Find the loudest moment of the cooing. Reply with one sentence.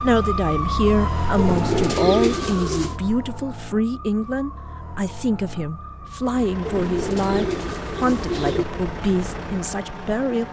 The volume of the cooing peaks at 2 seconds.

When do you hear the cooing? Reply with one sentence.
You can hear the cooing from 1.4 to 3.0 s and from 6.7 to 8.7 s.